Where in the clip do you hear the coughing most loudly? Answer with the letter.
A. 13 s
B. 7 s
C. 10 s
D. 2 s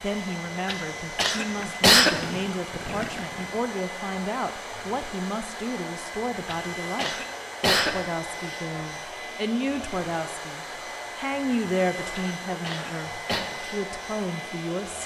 D.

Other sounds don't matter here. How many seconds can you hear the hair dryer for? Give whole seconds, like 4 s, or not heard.
15 s.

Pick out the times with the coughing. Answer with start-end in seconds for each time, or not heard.
0.7-2.4, 6.5-7.9, 12.1-13.4.